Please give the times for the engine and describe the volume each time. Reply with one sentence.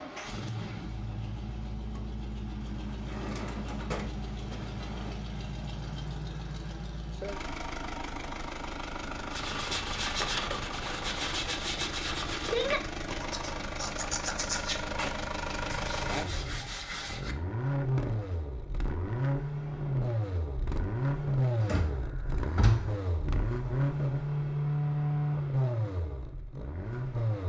You can hear the engine from 0.0 to 27.4 s, getting louder.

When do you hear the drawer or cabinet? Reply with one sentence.
You can hear the drawer or cabinet from 2.9 to 5.2 s, from 14.9 to 16.1 s and from 21.6 to 22.9 s.